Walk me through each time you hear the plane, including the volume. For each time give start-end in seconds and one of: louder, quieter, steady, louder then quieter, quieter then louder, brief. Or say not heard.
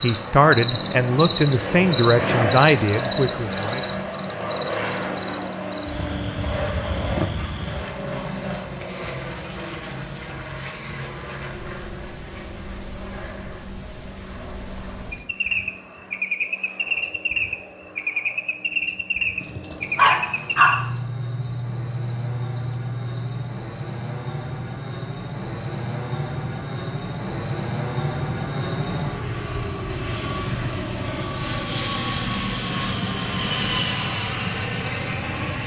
0.0-35.6 quieter then louder.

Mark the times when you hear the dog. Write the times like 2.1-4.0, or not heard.
19.4-20.9.